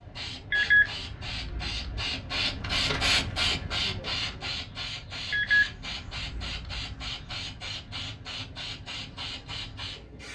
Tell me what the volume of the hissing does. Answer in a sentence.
The loudness of the hissing goes up, then down.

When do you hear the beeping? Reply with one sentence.
You can hear the beeping from 0.5 to 2.0 s and from 5.3 to 7.4 s.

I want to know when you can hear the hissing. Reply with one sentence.
The hissing can be heard from 0.0 to 10.3 s.